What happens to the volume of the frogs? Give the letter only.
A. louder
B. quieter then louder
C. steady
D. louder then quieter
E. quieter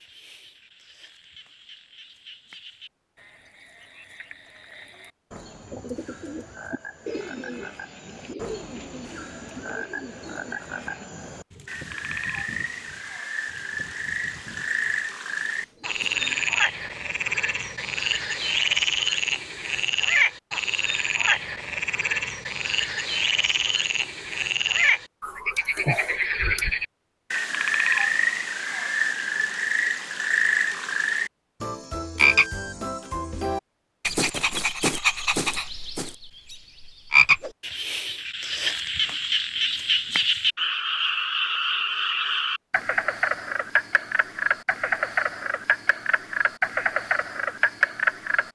A.